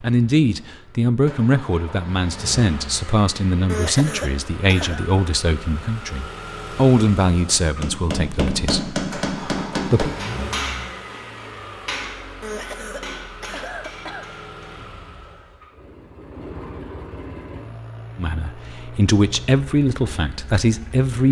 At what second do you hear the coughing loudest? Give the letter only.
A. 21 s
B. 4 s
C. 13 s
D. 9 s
B.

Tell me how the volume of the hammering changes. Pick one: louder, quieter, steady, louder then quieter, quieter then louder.
quieter.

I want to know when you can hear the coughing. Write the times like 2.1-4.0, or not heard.
3.6-5.0, 12.4-14.3.